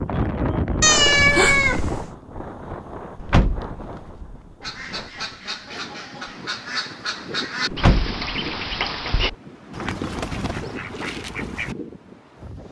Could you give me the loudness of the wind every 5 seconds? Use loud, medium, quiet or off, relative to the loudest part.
loud, medium, medium.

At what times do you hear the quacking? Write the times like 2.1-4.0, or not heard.
4.6-11.8.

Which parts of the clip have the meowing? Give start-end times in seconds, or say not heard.
0.8-2.1.